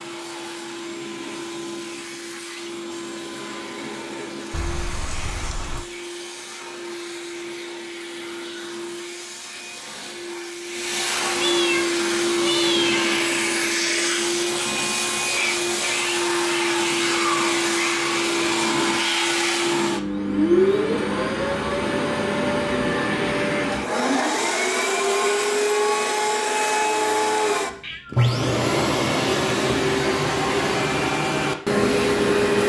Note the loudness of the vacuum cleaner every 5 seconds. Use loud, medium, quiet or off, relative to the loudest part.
quiet, quiet, loud, loud, loud, loud, loud.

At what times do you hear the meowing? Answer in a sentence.
You can hear the meowing from 4.5 to 5.8 s, from 11.3 to 13.1 s and from 27.8 to 28.3 s.